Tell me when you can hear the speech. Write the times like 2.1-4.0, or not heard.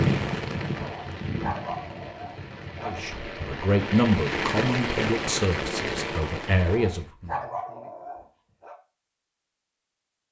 2.8-7.3.